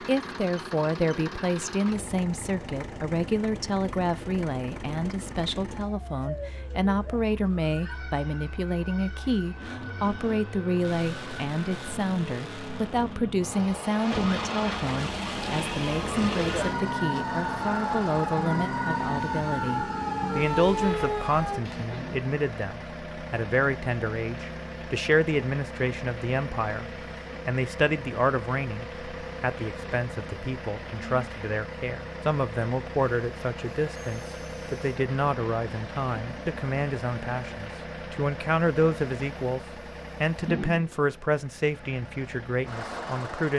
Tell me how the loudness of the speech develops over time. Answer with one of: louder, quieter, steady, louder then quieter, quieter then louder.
steady.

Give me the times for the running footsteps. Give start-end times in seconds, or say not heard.
not heard.